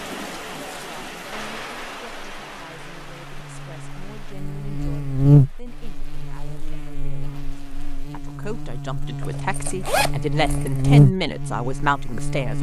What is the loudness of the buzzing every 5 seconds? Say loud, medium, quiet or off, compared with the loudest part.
quiet, loud, loud.